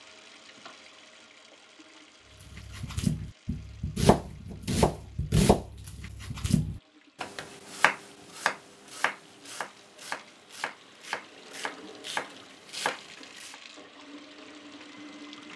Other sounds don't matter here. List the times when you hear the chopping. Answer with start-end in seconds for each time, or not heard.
2.5-13.6.